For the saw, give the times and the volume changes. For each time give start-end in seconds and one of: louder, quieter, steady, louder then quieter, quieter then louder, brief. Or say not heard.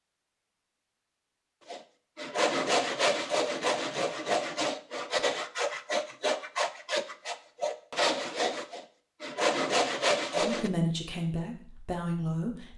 1.7-10.7 steady.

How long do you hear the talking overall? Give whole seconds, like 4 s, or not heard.
2 s.